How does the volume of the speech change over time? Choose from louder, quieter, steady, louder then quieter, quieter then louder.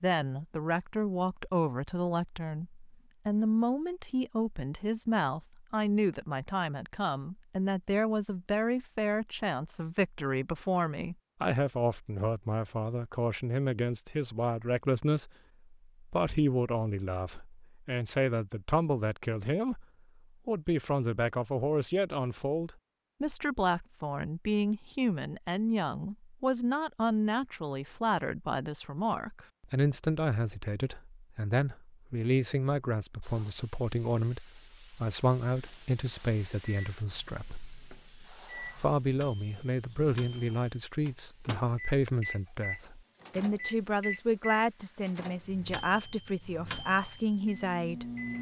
steady.